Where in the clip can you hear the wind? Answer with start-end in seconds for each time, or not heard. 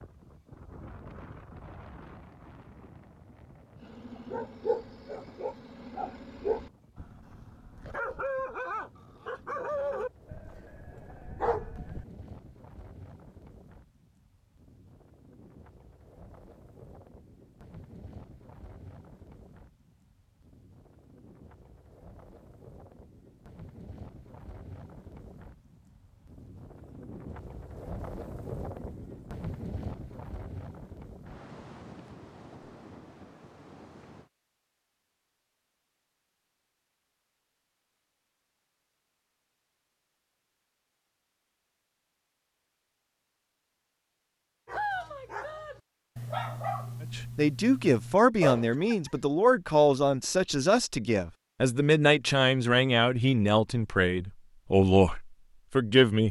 0.0-34.3.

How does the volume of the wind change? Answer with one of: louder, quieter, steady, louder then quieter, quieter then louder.
louder.